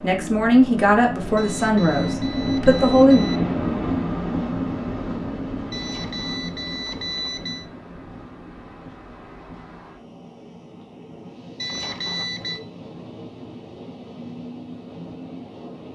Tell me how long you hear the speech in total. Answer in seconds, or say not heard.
3 s.